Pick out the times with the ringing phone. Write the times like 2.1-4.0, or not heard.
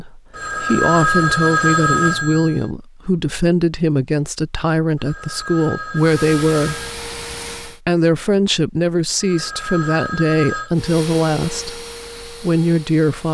0.3-2.6, 5.0-7.0, 9.2-10.8.